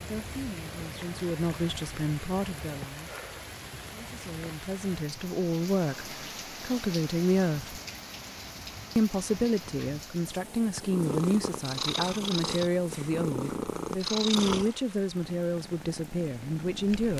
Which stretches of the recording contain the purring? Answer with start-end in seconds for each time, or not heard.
10.8-17.1.